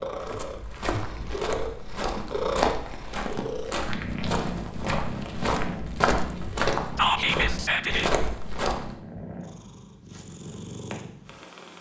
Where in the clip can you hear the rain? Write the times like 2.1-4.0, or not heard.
not heard.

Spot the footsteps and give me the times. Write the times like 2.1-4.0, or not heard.
0.1-8.9.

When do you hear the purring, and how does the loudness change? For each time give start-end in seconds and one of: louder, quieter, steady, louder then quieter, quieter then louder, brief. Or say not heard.
0.0-11.7 quieter.